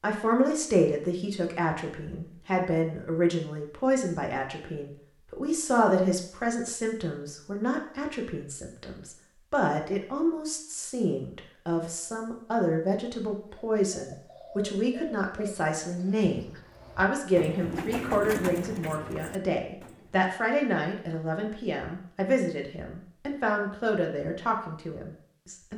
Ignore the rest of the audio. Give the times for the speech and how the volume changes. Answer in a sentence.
The speech can be heard from 0.0 to 25.7 s, at a steady volume.